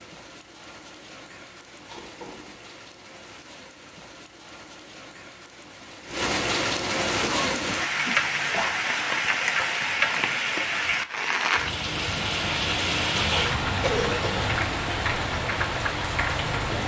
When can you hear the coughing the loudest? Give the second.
14 s.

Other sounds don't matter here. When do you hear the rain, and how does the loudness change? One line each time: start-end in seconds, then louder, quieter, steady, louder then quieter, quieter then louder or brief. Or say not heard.
0.0-16.8 louder.